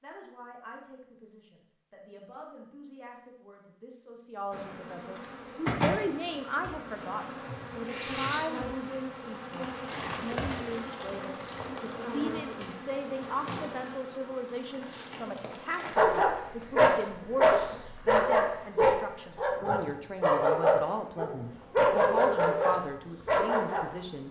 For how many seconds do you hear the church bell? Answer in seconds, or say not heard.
not heard.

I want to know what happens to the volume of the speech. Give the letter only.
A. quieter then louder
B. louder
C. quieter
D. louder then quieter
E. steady
B.